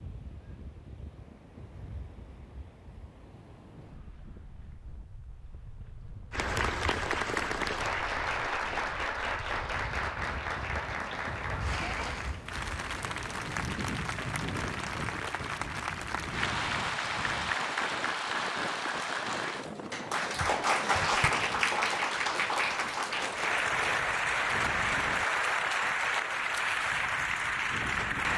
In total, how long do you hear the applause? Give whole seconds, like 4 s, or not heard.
22 s.